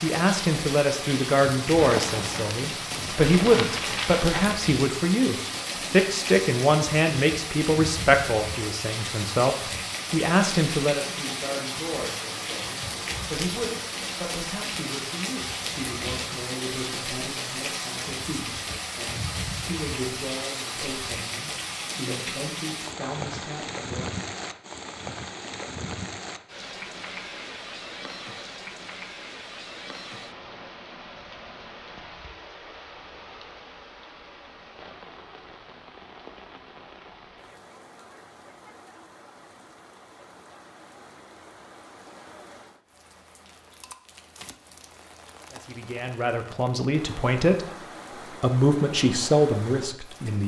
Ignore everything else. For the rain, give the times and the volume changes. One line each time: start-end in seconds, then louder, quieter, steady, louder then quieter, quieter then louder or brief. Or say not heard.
0.0-50.4 quieter.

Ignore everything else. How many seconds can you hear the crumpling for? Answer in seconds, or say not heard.
3 s.